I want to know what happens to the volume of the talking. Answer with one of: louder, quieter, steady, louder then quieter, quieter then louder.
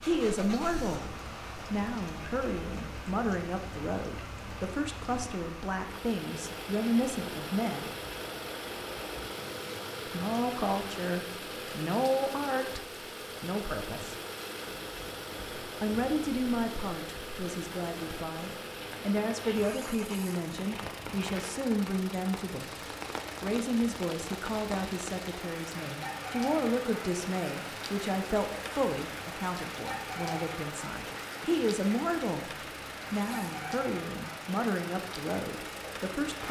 steady.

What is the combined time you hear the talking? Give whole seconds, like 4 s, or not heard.
32 s.